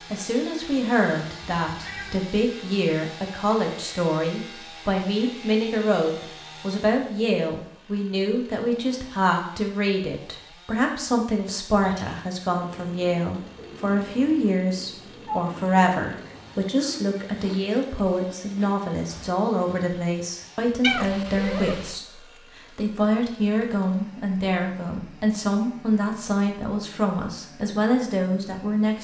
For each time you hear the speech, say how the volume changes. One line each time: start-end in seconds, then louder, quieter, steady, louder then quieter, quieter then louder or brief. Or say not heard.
0.1-28.9 steady.